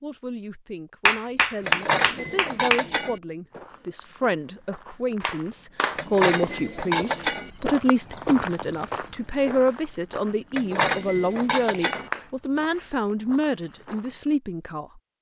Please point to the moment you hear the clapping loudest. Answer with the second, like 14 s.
2 s.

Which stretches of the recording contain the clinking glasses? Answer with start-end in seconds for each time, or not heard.
1.6-3.2, 6.0-7.5, 10.6-12.1.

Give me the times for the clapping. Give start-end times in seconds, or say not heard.
1.1-2.9, 5.2-6.0, 11.6-12.2.